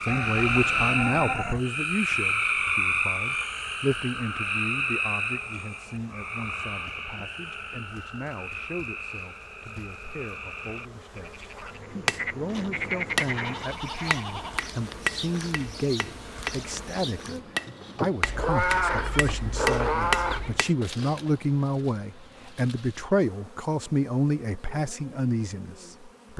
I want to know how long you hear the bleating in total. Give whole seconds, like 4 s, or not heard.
6 s.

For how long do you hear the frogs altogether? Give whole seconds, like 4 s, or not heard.
14 s.